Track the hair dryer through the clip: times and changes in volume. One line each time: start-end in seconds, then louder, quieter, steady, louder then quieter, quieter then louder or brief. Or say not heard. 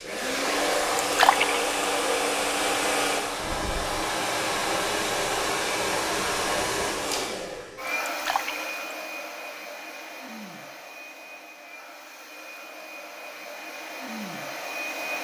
0.0-15.1 quieter.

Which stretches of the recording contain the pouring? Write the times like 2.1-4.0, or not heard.
1.1-1.6, 8.1-8.7.